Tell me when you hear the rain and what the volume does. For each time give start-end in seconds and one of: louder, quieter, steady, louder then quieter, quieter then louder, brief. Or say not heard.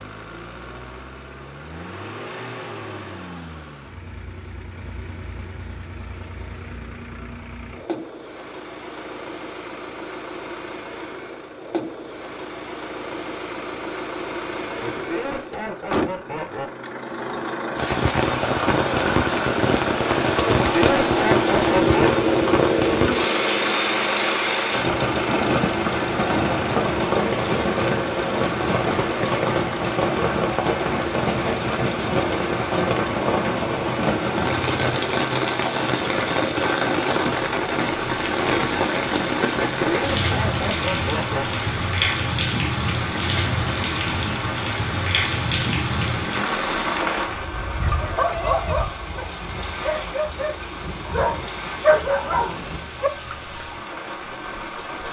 17.8-55.0 quieter.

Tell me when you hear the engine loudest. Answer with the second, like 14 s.
22 s.